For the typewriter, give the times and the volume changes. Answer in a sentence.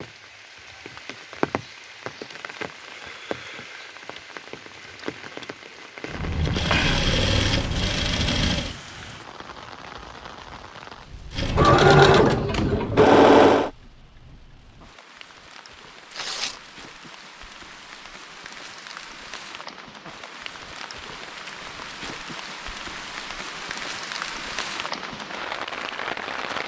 The typewriter can't be heard in this clip.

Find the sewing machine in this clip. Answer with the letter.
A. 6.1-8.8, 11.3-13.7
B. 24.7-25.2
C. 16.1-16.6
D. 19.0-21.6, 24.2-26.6
A.